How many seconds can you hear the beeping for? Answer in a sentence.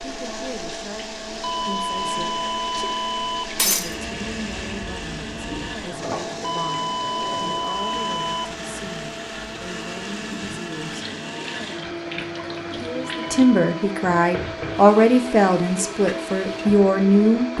You can hear the beeping for 5 seconds altogether.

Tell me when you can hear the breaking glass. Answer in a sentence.
The breaking glass can be heard from 3.5 to 4.0 s.